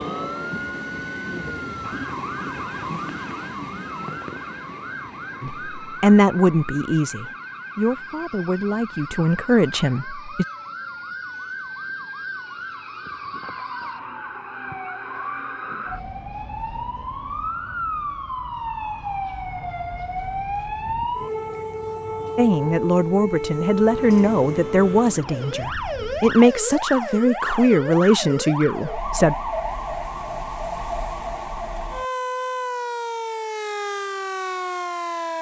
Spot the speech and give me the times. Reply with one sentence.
You can hear the speech from 5.4 to 10.4 s and from 22.4 to 29.4 s.